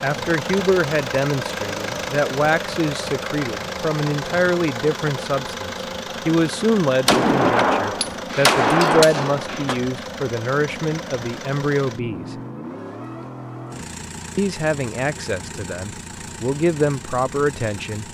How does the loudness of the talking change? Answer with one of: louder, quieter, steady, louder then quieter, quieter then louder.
steady.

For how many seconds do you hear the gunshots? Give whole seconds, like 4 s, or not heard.
3 s.